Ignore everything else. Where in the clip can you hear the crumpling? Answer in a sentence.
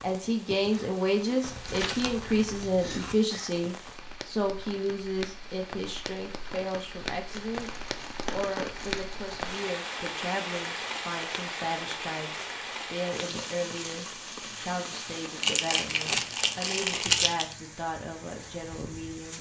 The crumpling can be heard from 1.4 to 3.1 s, from 7.3 to 9.8 s and from 15.4 to 17.6 s.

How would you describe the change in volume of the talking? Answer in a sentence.
The volume of the talking goes down.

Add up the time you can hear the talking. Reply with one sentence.
The talking can be heard for 19 seconds in total.